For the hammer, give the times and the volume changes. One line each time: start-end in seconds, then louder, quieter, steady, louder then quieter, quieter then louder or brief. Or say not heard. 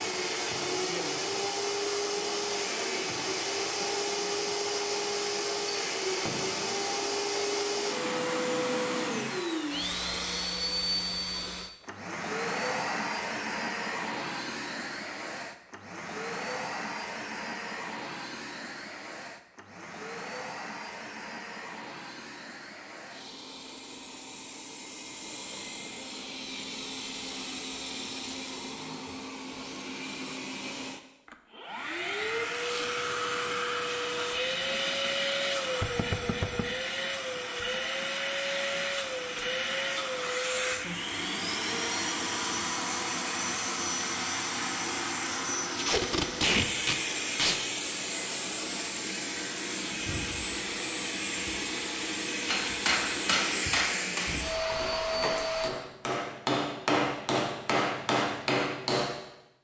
52.5-59.2 quieter then louder.